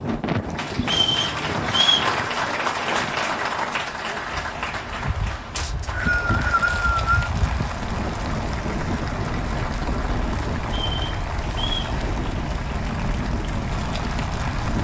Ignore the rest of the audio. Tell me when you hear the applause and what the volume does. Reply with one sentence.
You can hear the applause from 0.0 to 14.7 s, getting quieter.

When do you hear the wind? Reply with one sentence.
You can hear the wind from 0.0 to 14.7 s.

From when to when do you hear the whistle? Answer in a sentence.
You can hear the whistle from 0.8 to 2.1 s, from 5.5 to 7.3 s and from 10.7 to 11.9 s.